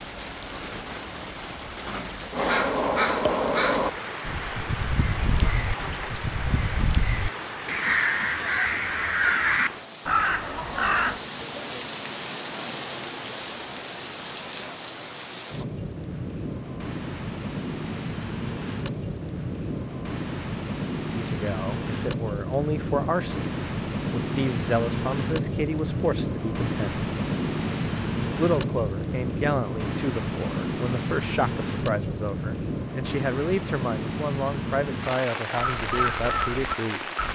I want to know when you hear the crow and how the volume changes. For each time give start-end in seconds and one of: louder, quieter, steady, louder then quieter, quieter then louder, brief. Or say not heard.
2.3-11.2 quieter then louder
35.5-37.3 brief.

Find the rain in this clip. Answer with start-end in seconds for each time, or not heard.
0.0-37.3.